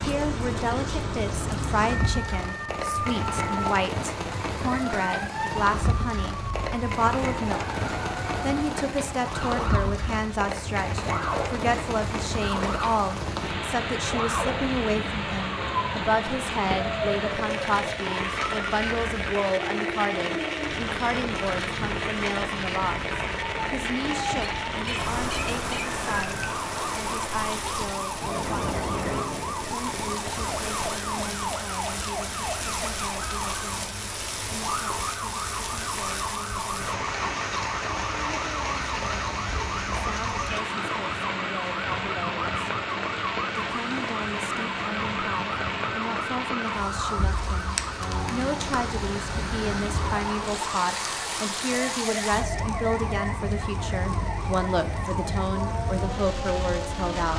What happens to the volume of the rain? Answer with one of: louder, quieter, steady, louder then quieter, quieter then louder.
steady.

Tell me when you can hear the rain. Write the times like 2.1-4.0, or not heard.
0.0-57.3.